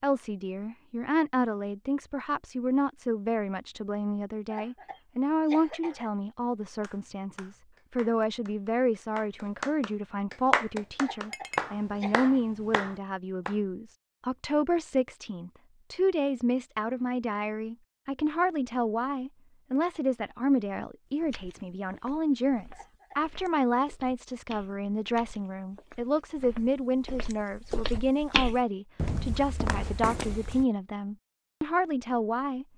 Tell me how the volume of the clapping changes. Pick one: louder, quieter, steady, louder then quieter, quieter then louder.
louder then quieter.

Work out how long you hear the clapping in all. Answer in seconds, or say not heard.
7 s.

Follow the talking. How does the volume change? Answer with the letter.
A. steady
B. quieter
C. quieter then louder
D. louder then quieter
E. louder
A.